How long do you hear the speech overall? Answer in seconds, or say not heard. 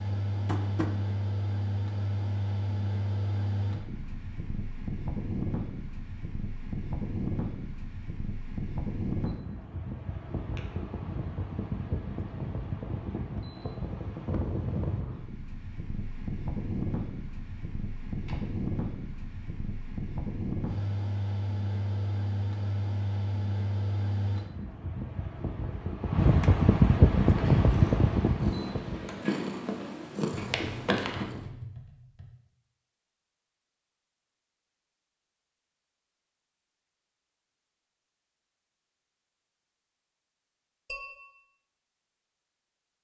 not heard.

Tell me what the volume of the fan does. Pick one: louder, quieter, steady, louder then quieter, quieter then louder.
louder.